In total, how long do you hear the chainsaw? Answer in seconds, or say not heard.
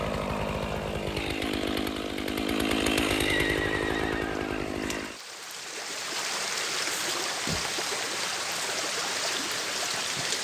5 s.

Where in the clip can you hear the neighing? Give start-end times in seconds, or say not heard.
3.2-4.5.